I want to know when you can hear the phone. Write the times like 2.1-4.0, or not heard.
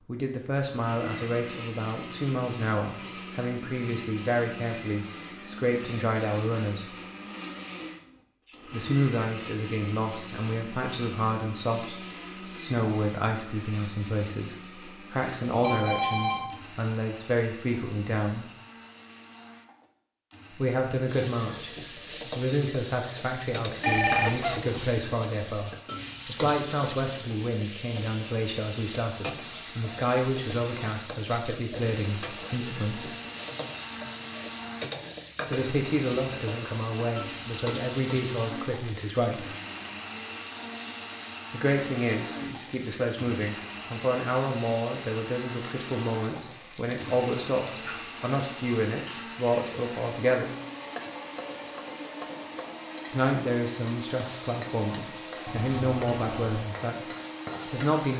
15.6-16.6, 23.8-24.9, 55.5-56.6.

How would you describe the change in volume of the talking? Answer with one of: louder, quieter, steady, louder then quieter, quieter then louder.
steady.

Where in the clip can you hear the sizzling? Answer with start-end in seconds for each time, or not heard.
21.1-57.9.